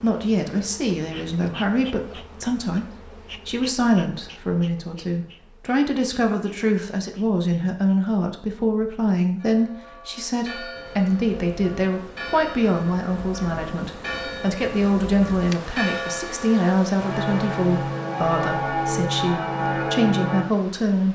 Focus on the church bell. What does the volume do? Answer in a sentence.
The volume of the church bell goes up.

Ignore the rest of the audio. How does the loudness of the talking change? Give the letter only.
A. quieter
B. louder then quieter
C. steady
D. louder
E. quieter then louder
C.